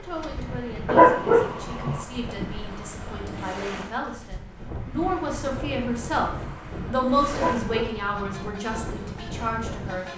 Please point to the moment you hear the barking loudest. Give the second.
1 s.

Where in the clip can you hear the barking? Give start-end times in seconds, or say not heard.
0.8-2.0, 7.3-8.4.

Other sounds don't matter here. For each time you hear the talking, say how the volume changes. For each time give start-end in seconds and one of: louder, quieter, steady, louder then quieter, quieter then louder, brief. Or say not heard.
0.0-10.1 louder then quieter.